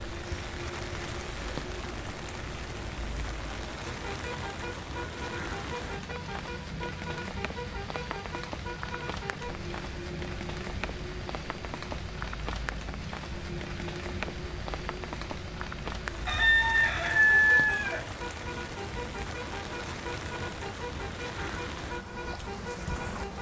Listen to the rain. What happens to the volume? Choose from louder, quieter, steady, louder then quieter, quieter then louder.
steady.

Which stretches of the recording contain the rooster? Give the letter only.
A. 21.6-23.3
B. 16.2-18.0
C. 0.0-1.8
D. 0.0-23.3
B.